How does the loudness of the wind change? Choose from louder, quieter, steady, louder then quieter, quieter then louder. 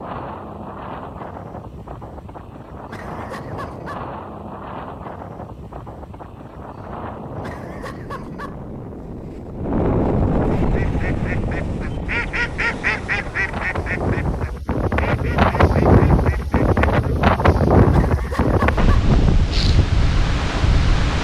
louder.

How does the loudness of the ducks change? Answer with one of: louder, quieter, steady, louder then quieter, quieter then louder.
louder then quieter.